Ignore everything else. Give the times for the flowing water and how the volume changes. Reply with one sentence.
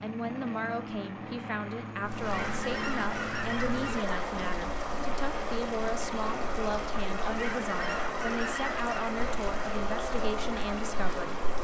You can hear the flowing water from 2.0 to 11.6 s, at a steady volume.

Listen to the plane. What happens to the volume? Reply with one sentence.
The volume of the plane stays about the same.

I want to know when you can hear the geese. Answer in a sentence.
You can hear the geese from 2.2 to 4.1 s and from 7.3 to 9.2 s.